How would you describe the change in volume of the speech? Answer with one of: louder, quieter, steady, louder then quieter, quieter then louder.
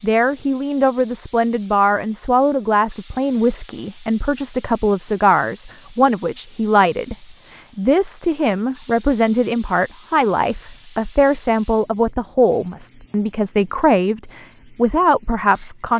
steady.